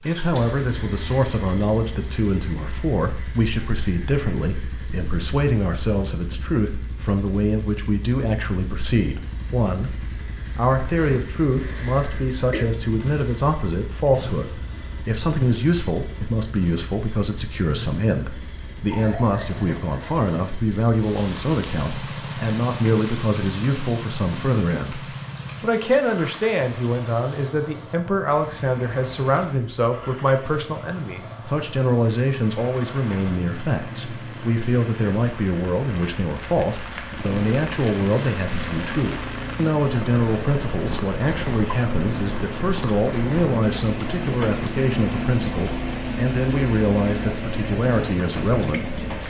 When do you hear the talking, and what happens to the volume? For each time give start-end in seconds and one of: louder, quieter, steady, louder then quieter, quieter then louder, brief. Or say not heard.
0.0-25.0 steady
25.6-49.0 steady.